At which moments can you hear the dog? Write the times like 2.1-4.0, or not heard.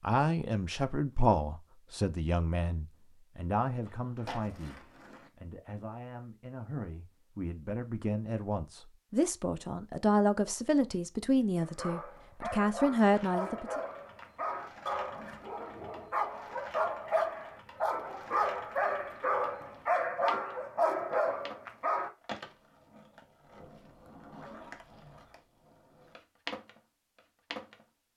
11.6-22.1.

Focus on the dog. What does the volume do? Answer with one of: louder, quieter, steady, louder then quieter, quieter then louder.
louder.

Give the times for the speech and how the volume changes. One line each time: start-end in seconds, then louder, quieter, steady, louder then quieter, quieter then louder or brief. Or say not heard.
0.0-13.8 quieter then louder.